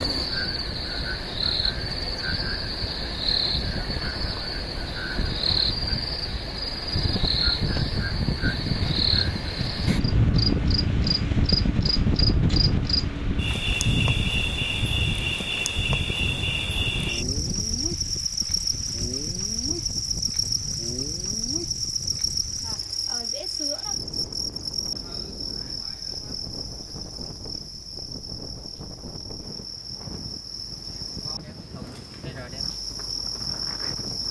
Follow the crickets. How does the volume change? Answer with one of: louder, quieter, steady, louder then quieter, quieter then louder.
quieter.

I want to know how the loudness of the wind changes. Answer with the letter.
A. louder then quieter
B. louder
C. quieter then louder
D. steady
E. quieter
A.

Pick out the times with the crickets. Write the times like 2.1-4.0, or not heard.
0.0-34.2.